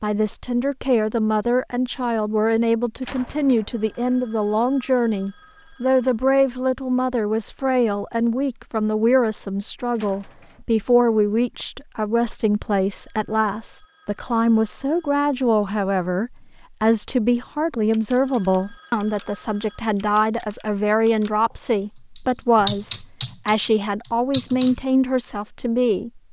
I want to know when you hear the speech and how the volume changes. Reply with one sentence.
You can hear the speech from 0.0 to 26.2 s, at a steady volume.